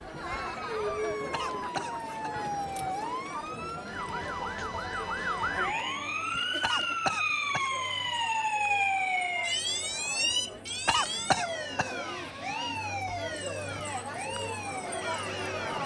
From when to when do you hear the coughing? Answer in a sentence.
The coughing can be heard from 1.3 to 2.3 s, from 6.6 to 8.2 s and from 10.8 to 12.8 s.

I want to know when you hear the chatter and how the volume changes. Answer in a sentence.
You can hear the chatter from 0.0 to 15.8 s, getting quieter then louder.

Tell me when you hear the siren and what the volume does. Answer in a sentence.
You can hear the siren from 0.2 to 15.8 s, getting louder then quieter.